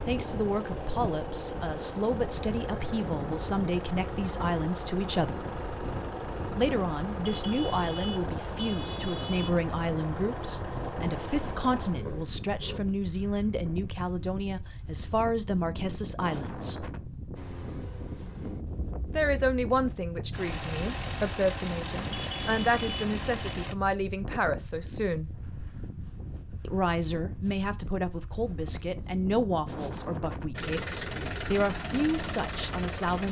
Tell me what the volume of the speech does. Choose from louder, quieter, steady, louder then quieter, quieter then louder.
steady.